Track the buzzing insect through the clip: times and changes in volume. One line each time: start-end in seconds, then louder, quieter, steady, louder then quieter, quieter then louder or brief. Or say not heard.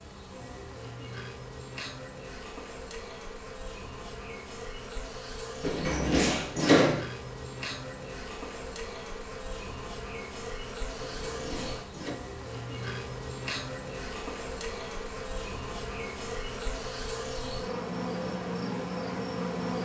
0.0-19.8 louder.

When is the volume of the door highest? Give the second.
7 s.